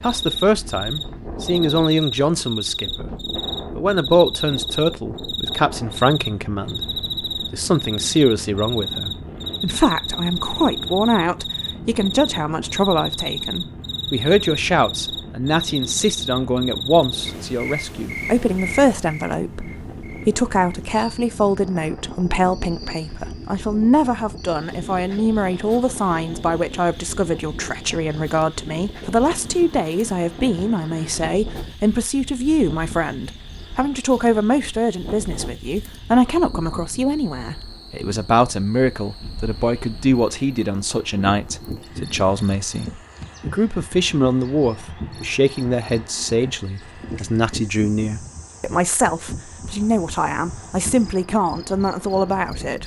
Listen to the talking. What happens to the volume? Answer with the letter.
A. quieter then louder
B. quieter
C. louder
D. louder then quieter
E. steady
E.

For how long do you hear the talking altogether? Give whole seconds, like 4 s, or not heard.
52 s.